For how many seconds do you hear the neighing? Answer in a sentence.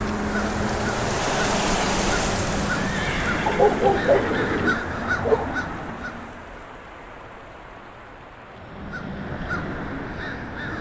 The neighing can be heard for 2 seconds in total.